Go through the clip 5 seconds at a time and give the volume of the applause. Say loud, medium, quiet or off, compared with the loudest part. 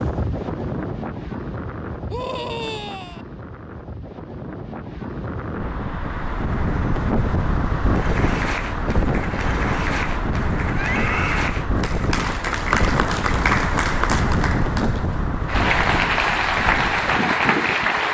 off, medium, medium, loud.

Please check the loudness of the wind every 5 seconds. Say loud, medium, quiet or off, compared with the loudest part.
medium, loud, loud, loud.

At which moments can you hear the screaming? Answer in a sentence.
The screaming can be heard from 2.1 to 3.2 s and from 10.8 to 11.5 s.